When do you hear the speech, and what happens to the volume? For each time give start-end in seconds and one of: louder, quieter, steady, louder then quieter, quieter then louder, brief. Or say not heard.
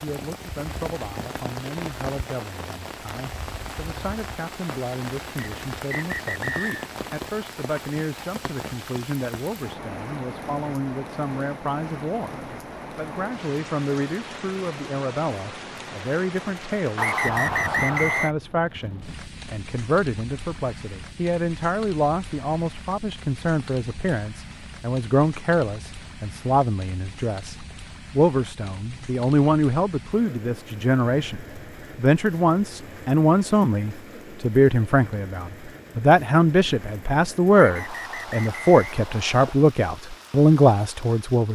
0.0-41.5 louder.